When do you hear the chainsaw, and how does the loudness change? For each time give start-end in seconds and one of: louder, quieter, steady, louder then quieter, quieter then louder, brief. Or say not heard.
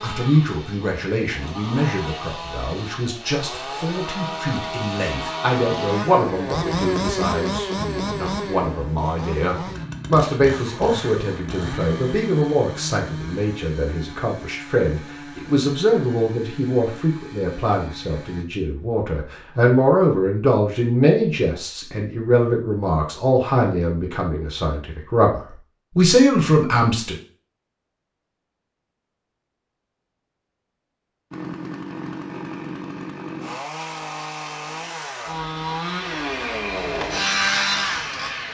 0.0-18.4 louder then quieter
31.3-38.5 louder.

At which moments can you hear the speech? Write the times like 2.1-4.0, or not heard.
0.0-27.1.